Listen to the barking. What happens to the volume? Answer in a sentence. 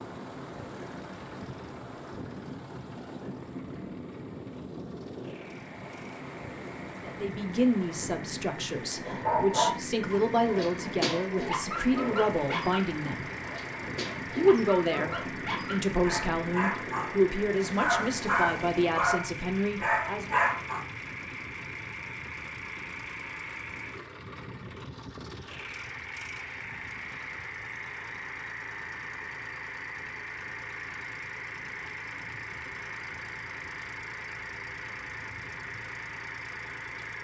The loudness of the barking goes down, then up.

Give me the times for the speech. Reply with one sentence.
The speech can be heard from 7.0 to 13.2 s and from 14.3 to 20.4 s.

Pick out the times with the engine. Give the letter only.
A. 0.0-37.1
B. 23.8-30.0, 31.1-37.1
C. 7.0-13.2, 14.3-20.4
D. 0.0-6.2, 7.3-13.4
A.